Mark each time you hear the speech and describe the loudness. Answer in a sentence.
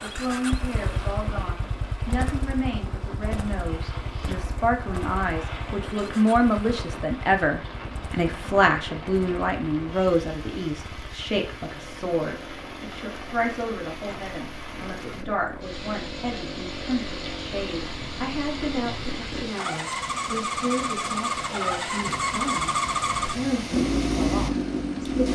You can hear the speech from 0.0 to 25.3 s, getting louder then quieter.